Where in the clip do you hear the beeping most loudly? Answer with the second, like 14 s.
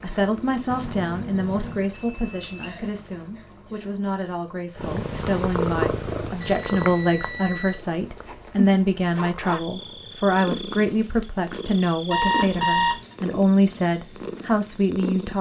13 s.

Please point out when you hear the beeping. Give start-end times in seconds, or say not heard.
1.9-2.8, 6.4-7.8, 12.1-13.0.